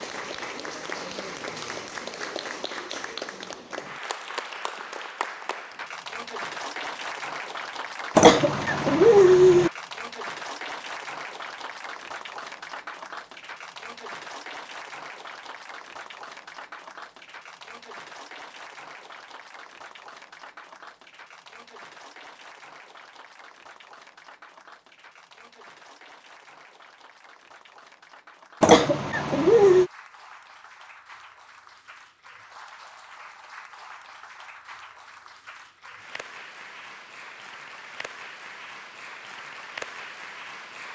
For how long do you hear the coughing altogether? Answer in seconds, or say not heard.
3 s.